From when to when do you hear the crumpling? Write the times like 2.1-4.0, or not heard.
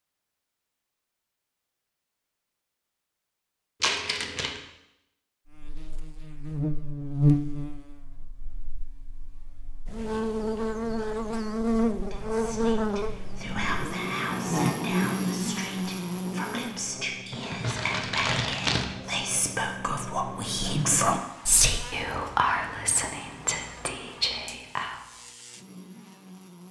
3.8-4.6, 17.3-18.9.